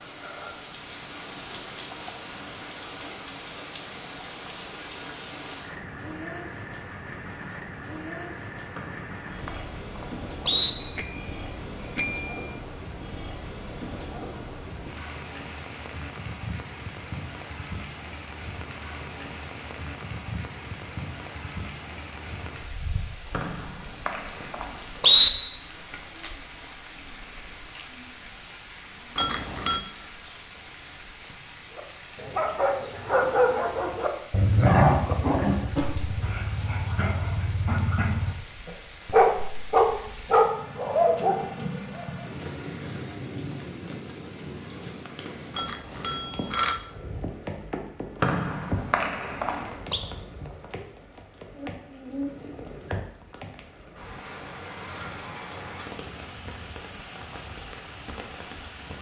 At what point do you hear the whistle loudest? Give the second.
25 s.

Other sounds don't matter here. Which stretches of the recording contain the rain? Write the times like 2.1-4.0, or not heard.
0.0-58.9.